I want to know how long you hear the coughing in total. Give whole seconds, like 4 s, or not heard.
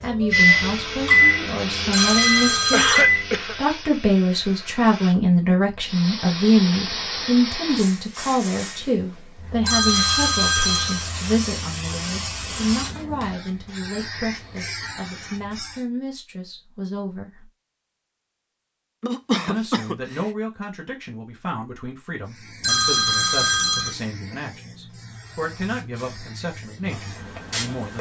2 s.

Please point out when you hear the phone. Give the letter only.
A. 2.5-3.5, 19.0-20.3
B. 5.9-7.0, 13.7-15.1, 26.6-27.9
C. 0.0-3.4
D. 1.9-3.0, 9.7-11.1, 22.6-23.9
D.